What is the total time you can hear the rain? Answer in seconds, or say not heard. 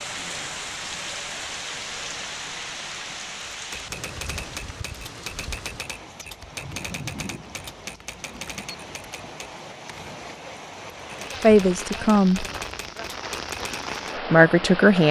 15 s.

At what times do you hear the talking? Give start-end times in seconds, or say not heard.
11.4-12.4, 14.3-15.0.